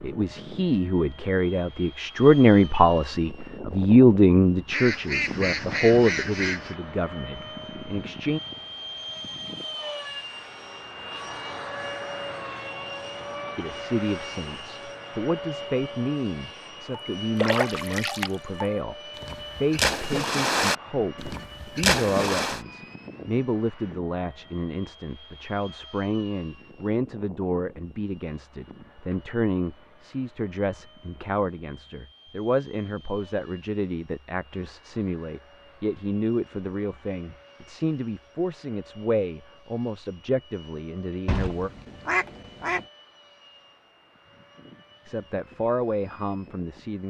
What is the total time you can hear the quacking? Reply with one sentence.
You can hear the quacking for 4 seconds altogether.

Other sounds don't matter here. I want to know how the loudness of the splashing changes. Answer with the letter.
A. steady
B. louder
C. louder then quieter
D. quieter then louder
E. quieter
D.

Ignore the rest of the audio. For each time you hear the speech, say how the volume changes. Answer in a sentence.
The speech can be heard from 0.0 to 8.4 s, getting louder then quieter; from 13.6 to 41.7 s, at a steady volume; and briefly from 45.0 to 47.0 s.